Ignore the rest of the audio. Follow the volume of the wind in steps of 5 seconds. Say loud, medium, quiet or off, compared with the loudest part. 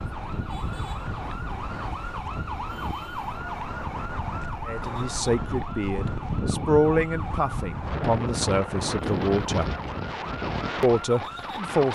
medium, loud, loud.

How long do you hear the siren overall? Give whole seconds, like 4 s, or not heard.
12 s.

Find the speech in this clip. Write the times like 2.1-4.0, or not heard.
4.7-9.7, 10.8-11.9.